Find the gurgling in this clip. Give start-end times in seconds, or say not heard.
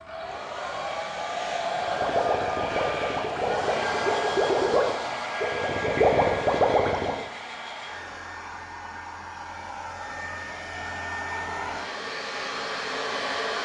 1.8-7.2.